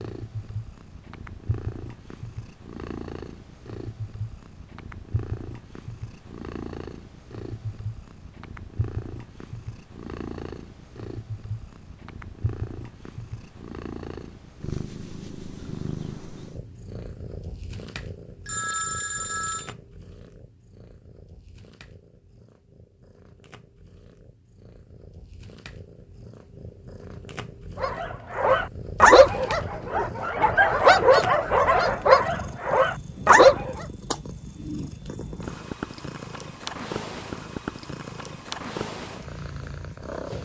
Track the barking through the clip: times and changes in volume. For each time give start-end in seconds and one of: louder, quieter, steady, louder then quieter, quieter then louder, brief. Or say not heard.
27.8-33.9 quieter then louder.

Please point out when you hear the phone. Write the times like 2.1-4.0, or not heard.
18.4-19.8.